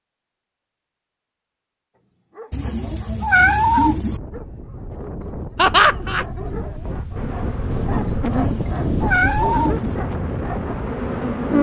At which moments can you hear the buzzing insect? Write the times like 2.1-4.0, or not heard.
7.2-11.5.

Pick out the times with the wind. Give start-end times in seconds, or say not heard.
3.7-11.5.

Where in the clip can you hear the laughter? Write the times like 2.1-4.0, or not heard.
5.5-6.2.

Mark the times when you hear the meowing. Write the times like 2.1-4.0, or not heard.
2.5-4.2, 8.3-10.0.